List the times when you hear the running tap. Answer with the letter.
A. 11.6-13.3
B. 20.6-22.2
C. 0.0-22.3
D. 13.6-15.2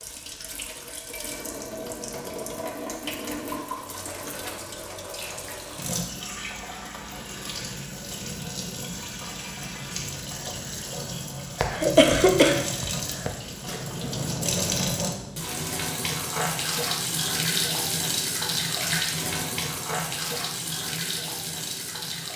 C.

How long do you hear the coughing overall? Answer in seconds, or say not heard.
2 s.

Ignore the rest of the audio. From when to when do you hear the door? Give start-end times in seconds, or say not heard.
13.6-15.2.